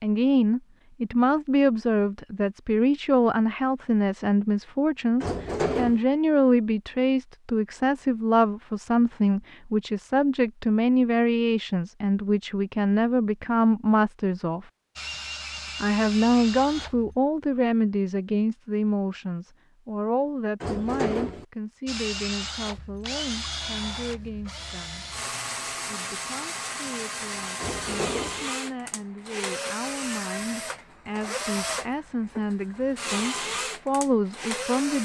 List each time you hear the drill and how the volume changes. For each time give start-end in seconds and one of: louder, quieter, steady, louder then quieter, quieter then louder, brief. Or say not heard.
14.9-17.1 brief
21.9-35.0 steady.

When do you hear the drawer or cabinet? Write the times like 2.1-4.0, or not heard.
5.2-6.0, 20.6-21.4, 27.6-28.4.